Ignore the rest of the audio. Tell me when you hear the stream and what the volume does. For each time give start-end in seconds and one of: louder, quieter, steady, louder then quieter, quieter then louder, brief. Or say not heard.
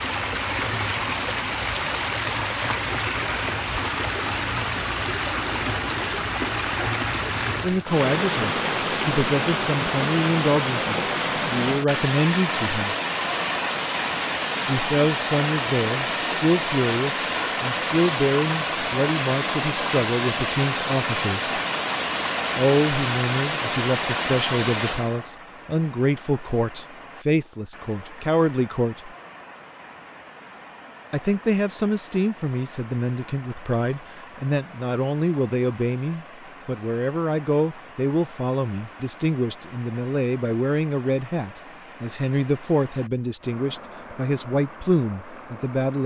0.0-46.0 quieter.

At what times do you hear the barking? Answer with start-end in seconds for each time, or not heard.
not heard.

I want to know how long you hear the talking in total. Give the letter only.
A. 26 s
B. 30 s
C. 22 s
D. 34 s
D.